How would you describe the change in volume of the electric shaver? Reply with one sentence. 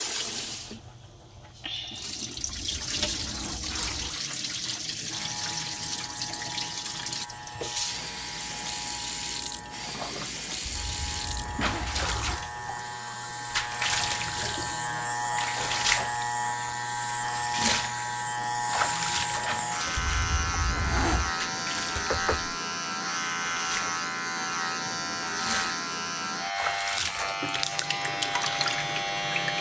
The volume of the electric shaver goes up.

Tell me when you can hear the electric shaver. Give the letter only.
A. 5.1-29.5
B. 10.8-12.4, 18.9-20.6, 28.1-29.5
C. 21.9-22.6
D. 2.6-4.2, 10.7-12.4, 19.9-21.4
A.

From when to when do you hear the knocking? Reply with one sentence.
The knocking can be heard from 21.9 to 22.6 s.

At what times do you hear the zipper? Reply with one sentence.
The zipper can be heard from 2.6 to 4.2 s, from 10.7 to 12.4 s and from 19.9 to 21.4 s.